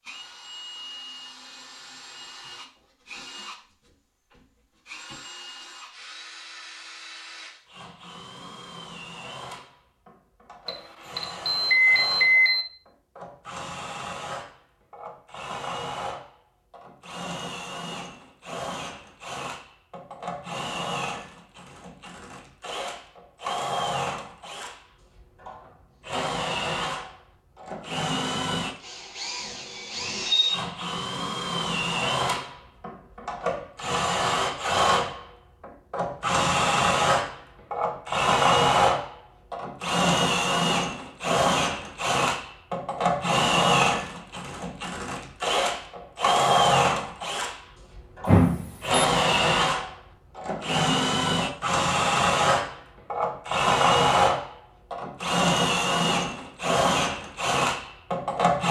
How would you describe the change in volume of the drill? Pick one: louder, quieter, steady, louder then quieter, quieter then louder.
louder.